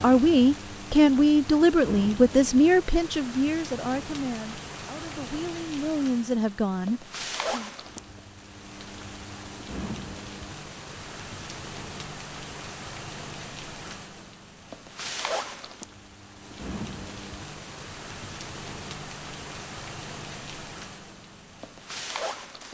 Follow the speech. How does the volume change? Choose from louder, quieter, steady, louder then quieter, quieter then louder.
quieter then louder.